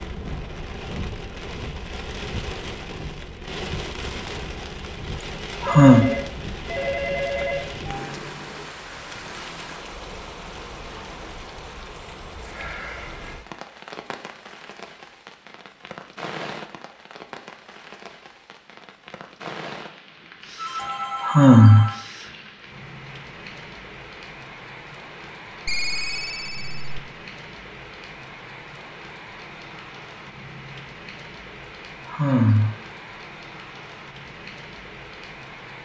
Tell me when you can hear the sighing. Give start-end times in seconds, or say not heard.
5.6-6.0, 21.2-21.9, 32.0-32.8.